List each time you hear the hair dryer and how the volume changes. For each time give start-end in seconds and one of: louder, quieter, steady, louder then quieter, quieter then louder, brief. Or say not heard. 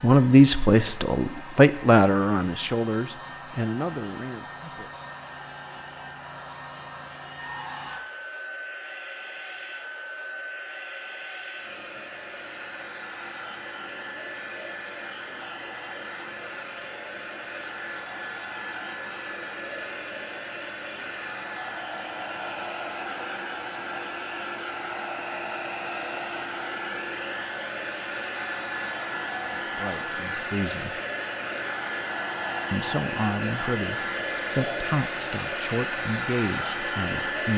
0.0-37.5 louder.